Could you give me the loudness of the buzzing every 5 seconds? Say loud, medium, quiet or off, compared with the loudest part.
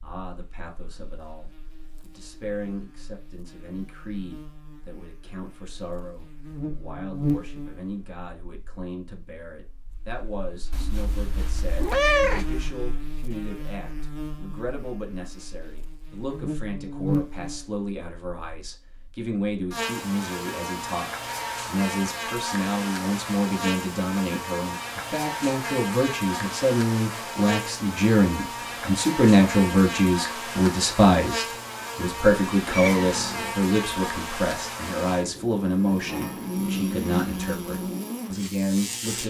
quiet, loud, medium, loud, loud, loud, loud, loud.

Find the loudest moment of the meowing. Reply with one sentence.
The volume of the meowing peaks at 12 seconds.